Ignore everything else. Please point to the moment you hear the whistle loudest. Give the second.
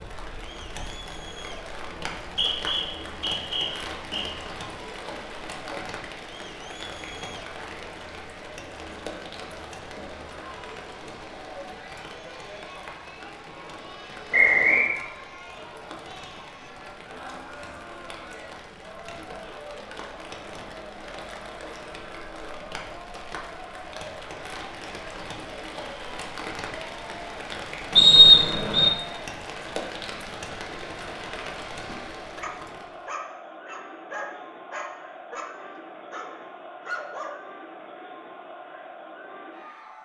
28 s.